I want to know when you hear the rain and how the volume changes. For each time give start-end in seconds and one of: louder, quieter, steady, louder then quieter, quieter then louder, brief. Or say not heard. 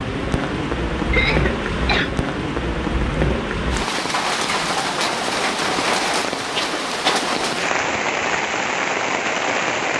0.0-9.9 steady.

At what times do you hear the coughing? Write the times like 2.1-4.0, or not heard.
1.1-2.1, 6.4-7.3.